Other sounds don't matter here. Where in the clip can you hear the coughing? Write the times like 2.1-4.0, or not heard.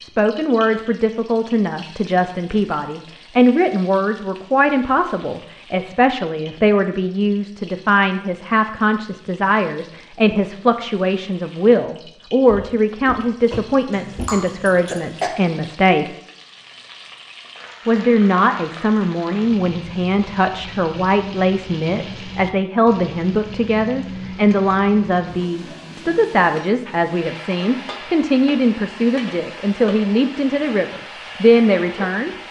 13.9-15.3.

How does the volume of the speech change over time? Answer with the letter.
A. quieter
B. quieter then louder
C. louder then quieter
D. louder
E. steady
E.